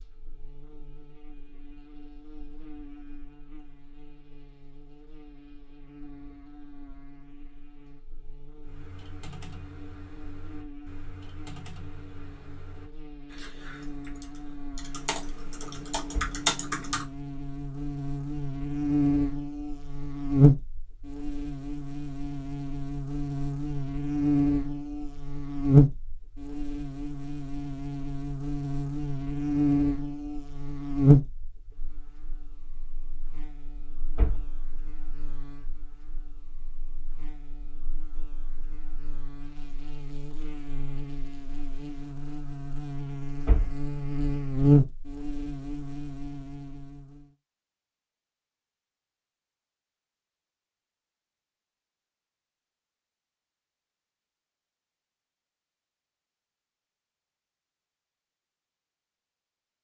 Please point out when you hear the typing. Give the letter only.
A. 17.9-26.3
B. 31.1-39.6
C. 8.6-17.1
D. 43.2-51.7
C.